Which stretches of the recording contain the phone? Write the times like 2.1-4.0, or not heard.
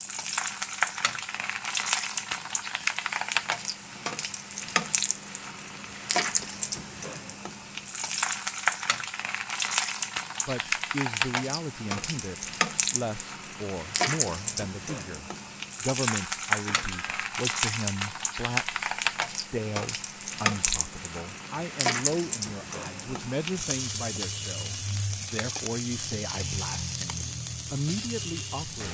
16.6-17.2.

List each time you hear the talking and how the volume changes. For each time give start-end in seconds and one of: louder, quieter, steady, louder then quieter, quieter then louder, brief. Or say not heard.
10.4-28.8 steady.